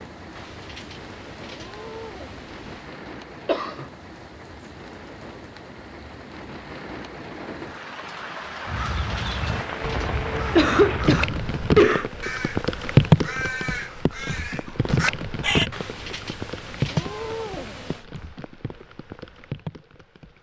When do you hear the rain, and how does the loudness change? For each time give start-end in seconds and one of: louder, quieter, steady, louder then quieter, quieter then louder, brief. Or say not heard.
0.0-20.3 louder then quieter.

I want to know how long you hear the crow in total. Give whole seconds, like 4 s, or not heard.
7 s.